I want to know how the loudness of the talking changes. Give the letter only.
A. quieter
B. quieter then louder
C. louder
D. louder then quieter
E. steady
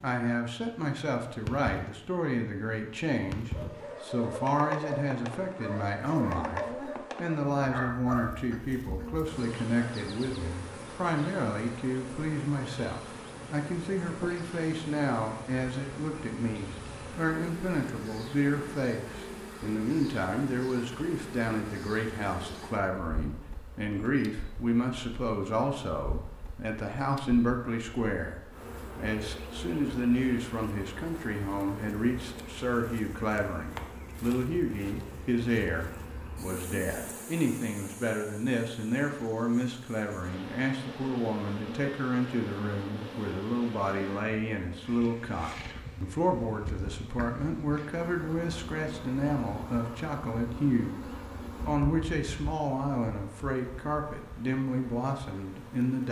E.